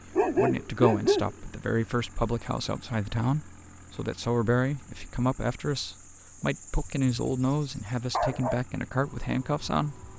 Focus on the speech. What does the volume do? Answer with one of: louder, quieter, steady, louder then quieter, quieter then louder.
steady.